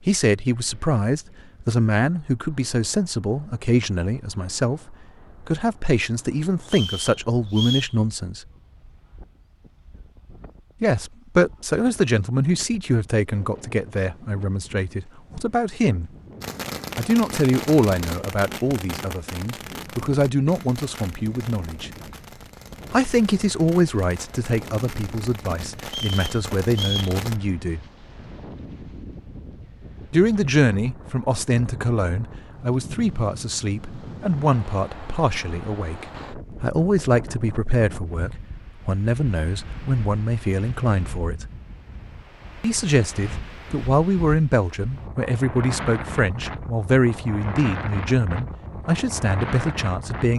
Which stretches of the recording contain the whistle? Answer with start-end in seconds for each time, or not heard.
6.7-8.0, 25.9-27.1.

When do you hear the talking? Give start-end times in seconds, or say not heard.
0.1-8.4, 10.8-16.1, 16.9-21.9, 22.9-27.8, 30.1-41.5, 42.6-50.3.